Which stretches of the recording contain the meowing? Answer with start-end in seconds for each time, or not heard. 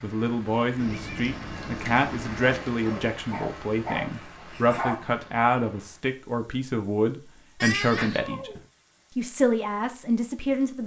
0.8-2.6, 7.6-8.6.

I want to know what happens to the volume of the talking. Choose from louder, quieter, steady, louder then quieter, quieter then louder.
steady.